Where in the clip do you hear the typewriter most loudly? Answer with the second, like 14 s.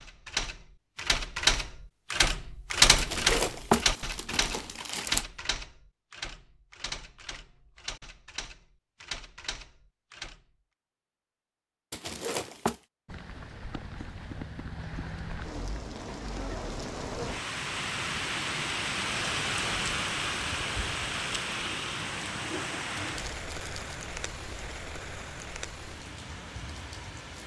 3 s.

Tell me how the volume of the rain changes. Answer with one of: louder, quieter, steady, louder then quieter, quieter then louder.
louder then quieter.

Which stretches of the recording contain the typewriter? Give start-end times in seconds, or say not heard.
0.0-10.4.